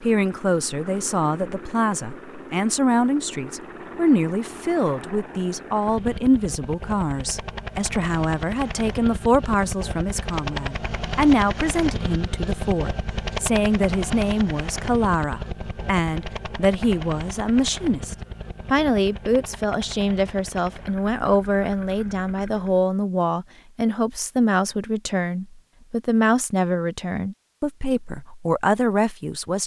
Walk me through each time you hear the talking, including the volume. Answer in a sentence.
You can hear the talking from 0.0 to 29.6 s, at a steady volume.